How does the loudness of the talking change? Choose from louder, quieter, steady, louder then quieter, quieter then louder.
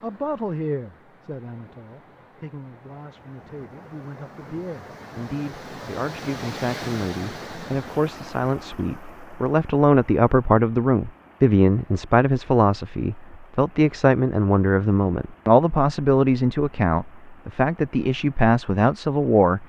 louder.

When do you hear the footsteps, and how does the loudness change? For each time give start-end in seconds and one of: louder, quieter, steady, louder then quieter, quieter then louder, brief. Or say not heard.
not heard.